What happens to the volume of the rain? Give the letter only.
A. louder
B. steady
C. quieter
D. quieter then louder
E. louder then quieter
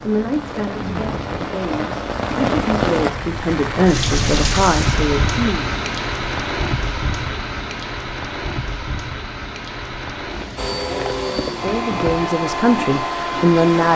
C.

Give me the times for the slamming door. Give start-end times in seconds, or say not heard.
not heard.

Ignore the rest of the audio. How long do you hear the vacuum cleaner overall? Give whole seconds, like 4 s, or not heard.
3 s.